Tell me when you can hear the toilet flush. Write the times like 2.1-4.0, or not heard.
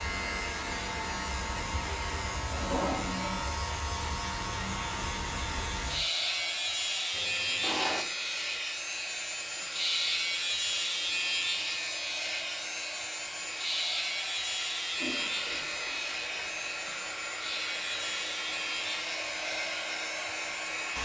2.5-3.6, 7.1-8.1, 14.9-16.6.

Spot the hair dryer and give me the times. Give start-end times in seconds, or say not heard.
0.0-21.0.